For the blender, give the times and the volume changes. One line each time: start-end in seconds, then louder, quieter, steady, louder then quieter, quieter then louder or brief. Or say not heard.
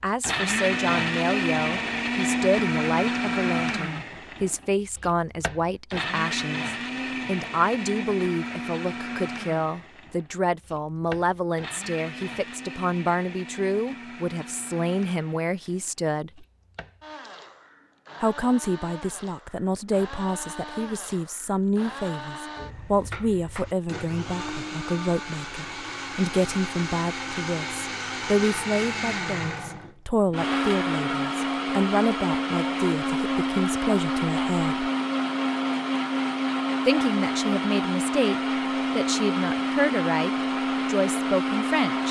0.2-42.0 quieter then louder.